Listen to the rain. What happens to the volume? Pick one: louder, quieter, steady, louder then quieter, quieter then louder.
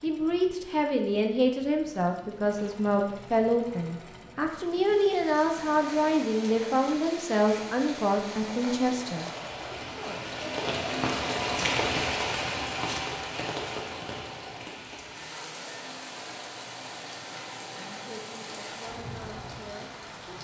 louder then quieter.